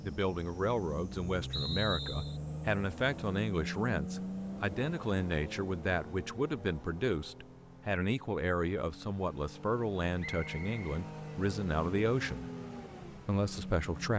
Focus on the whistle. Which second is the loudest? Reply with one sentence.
The loudest moment of the whistle is at 2 seconds.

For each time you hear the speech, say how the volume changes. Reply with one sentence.
You can hear the speech from 0.0 to 12.4 s, at a steady volume; and briefly from 13.1 to 14.1 s.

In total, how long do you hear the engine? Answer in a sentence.
You can hear the engine for 14 seconds altogether.